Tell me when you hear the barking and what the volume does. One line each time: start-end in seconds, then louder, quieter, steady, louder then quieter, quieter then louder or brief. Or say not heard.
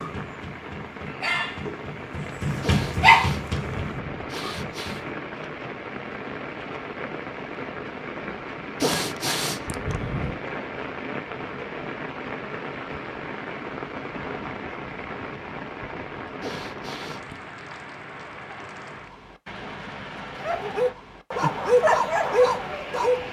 0.0-5.1 louder then quieter
20.4-23.2 brief.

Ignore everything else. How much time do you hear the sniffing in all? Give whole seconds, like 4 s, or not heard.
5 s.